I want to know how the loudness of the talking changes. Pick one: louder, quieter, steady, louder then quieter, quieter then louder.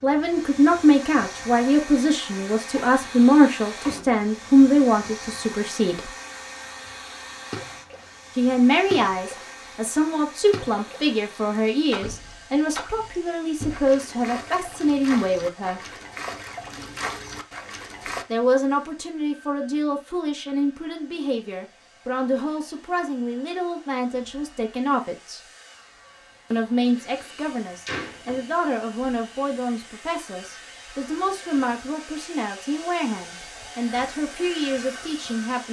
quieter.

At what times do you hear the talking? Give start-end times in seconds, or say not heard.
0.0-6.1, 8.3-15.9, 18.3-25.4, 26.5-35.6.